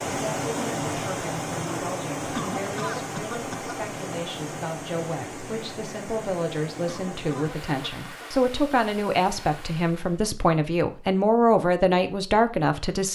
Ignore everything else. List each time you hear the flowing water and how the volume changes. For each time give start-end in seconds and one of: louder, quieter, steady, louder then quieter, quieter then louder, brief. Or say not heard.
0.0-10.2 quieter.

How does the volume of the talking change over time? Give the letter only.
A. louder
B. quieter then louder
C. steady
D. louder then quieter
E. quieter
A.